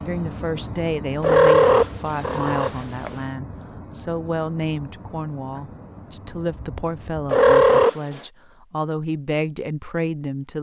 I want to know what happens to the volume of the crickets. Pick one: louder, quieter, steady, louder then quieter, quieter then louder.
quieter.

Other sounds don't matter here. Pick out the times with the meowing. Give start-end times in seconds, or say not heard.
1.2-3.1, 7.3-8.2.